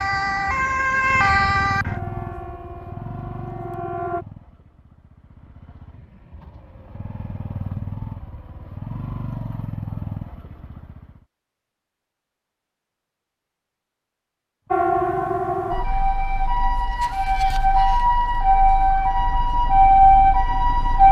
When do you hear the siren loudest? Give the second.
20 s.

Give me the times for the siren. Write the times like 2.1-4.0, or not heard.
0.0-4.2, 14.7-21.0.